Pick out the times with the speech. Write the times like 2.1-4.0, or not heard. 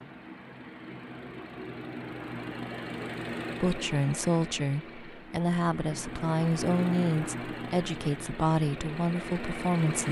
3.6-10.0.